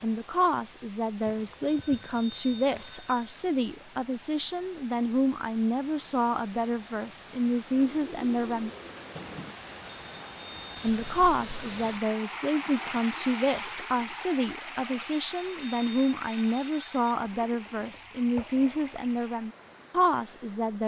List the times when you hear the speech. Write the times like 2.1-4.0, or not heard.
0.0-8.7, 10.8-20.8.